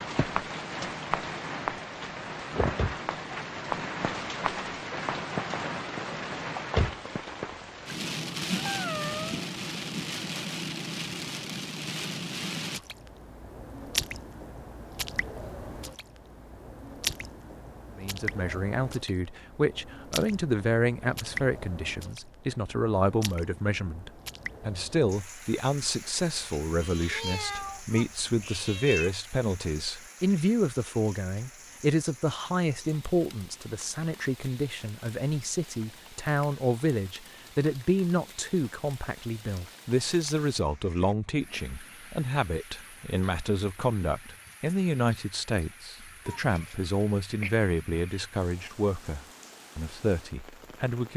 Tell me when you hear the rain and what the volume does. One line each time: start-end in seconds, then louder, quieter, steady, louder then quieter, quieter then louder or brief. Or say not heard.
0.0-51.1 quieter.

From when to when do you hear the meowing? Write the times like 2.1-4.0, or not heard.
8.5-9.5, 26.8-29.1, 46.2-48.2.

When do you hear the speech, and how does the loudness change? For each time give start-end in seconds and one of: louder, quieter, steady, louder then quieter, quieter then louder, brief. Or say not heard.
17.9-51.1 steady.